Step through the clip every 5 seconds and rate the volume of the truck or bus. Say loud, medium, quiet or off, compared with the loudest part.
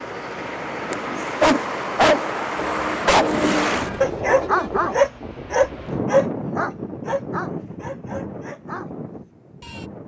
loud, off.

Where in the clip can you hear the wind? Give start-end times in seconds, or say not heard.
2.5-10.0.